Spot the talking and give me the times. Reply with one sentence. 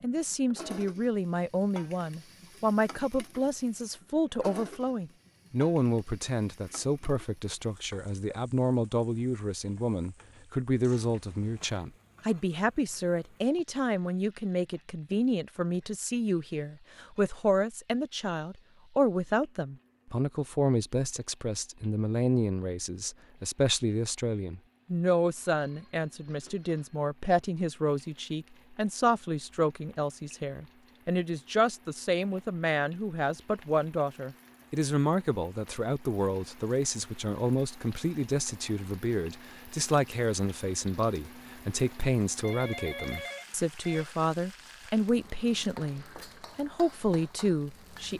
You can hear the talking from 0.0 to 48.1 s.